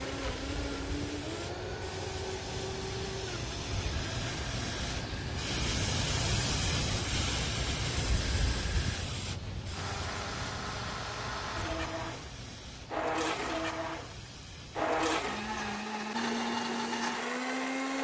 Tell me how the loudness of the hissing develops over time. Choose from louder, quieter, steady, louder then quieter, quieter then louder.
louder then quieter.